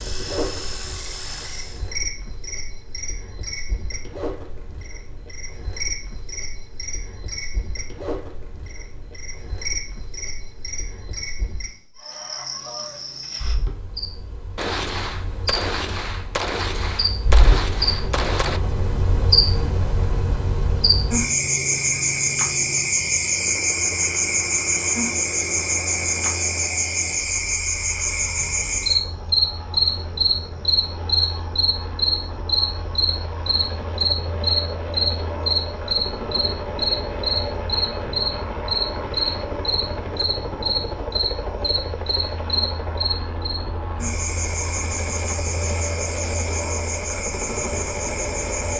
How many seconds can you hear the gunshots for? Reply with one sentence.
The gunshots can be heard for 4 seconds in total.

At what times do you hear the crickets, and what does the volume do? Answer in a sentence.
You can hear the crickets from 0.0 to 48.7 s, getting louder then quieter.